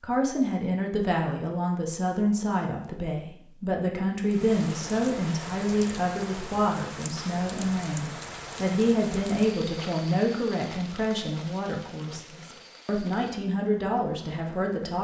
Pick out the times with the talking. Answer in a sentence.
You can hear the talking from 0.0 to 14.9 s.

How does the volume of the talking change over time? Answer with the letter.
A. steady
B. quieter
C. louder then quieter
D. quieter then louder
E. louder
A.